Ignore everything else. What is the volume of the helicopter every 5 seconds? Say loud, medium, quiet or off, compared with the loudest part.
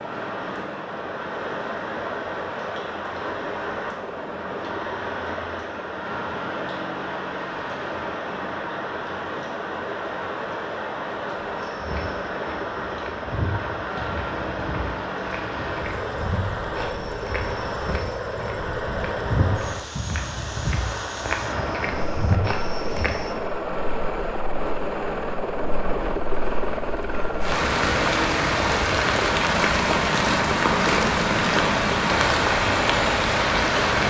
medium, medium, medium, medium, loud, loud, loud.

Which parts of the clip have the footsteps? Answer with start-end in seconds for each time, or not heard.
11.6-23.3.